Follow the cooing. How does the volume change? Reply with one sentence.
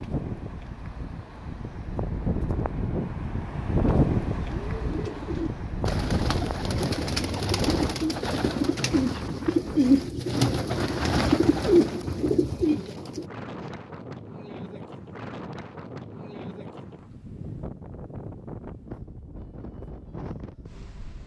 The loudness of the cooing goes up.